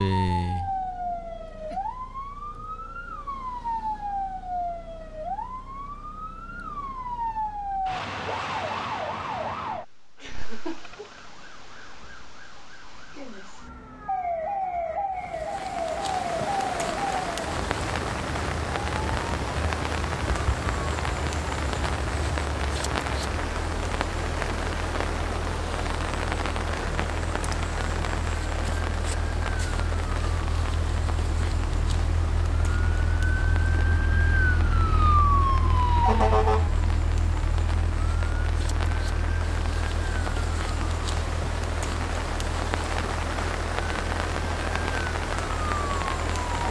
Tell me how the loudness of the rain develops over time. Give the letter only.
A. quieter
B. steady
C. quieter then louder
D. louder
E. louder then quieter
C.